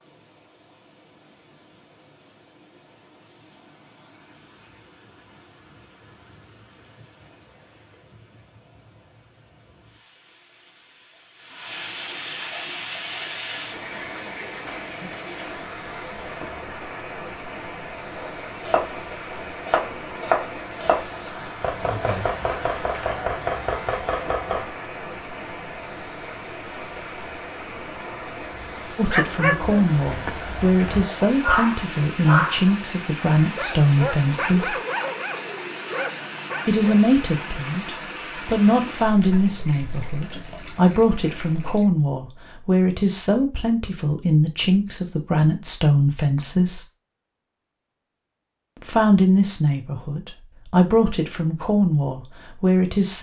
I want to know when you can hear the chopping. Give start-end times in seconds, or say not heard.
18.1-24.7.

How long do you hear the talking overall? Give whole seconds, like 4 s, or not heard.
20 s.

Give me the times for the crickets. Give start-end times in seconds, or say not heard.
not heard.